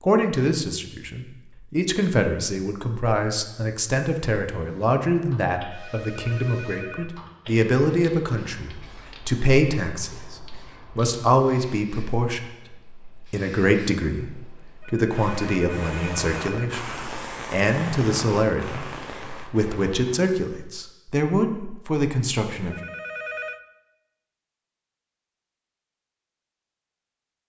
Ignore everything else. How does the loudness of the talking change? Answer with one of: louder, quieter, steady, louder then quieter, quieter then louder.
steady.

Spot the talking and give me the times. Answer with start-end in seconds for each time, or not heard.
0.0-10.3, 10.9-22.8.